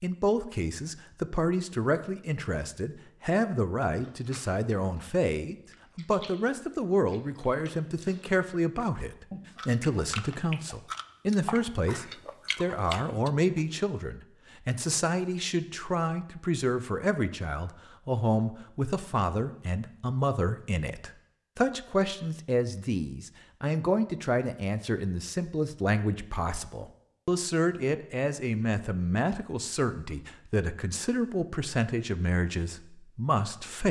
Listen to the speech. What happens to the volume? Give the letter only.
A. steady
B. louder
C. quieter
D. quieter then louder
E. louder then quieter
A.